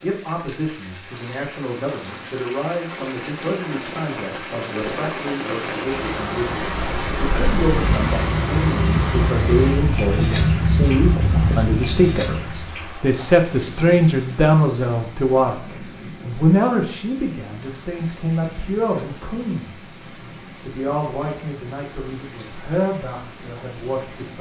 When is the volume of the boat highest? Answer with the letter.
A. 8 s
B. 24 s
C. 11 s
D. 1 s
C.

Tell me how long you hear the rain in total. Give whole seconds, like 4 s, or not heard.
24 s.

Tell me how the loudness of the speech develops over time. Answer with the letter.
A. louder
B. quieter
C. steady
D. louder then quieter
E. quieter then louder
D.